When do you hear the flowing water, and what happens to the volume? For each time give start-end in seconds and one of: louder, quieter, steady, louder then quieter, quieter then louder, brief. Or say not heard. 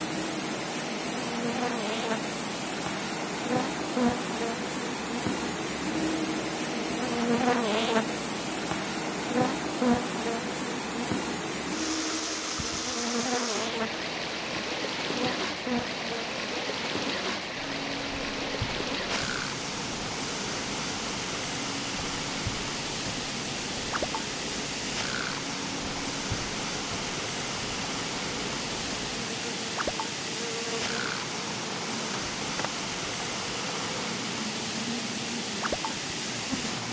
0.0-36.8 steady.